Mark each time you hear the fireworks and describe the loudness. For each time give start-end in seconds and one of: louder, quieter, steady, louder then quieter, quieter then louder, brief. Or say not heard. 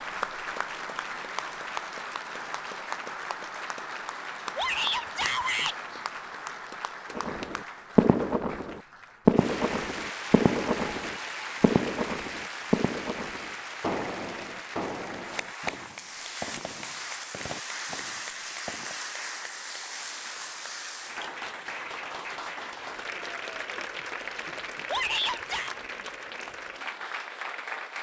7.2-19.0 quieter.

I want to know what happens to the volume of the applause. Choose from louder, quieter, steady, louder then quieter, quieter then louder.
steady.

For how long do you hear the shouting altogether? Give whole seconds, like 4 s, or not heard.
2 s.